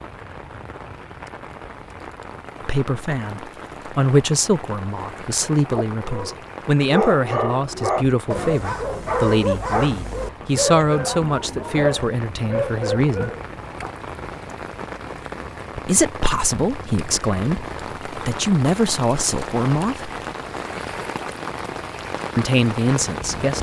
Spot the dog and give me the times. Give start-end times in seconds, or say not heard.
5.7-13.9.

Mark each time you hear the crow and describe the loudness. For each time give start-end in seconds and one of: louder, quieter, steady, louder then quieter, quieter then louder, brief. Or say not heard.
not heard.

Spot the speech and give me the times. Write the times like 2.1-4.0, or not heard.
2.6-13.3, 15.8-20.1, 22.4-23.5.